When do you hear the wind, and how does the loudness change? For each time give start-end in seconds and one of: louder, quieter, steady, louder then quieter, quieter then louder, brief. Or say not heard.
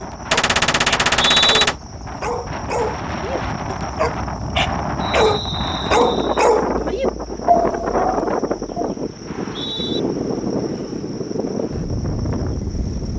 0.0-13.1 louder.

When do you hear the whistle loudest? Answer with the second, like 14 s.
1 s.